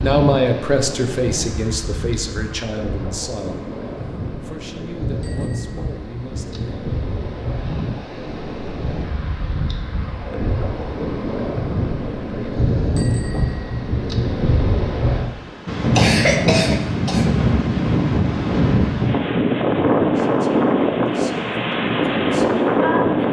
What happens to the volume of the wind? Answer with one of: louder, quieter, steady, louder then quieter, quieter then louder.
louder.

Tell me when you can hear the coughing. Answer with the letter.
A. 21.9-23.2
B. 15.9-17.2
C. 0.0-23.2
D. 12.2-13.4
B.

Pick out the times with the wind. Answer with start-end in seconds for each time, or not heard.
0.0-23.2.